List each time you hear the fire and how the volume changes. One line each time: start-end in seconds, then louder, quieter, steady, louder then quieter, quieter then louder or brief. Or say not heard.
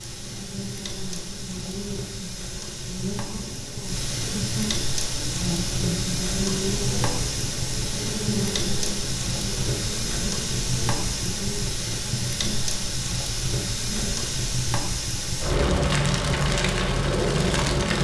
0.0-17.9 louder.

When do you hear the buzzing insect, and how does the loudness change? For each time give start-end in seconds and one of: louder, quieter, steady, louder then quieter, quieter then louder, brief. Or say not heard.
0.0-14.4 louder then quieter.